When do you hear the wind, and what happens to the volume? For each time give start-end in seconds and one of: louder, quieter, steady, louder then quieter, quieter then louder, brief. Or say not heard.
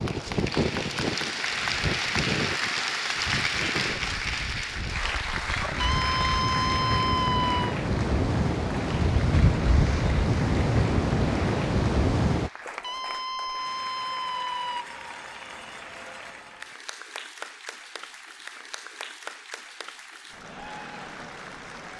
0.0-12.5 quieter then louder.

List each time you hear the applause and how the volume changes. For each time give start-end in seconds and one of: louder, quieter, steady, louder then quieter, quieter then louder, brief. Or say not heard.
0.0-21.9 quieter.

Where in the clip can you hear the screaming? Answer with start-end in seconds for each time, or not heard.
5.8-7.8, 12.8-14.8.